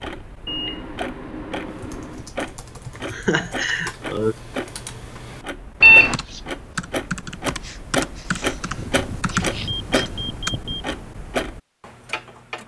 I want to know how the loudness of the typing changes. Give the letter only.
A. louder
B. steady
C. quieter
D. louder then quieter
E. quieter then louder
A.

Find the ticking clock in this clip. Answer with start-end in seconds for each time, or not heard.
0.0-12.6.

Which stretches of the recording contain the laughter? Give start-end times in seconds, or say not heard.
3.1-4.3.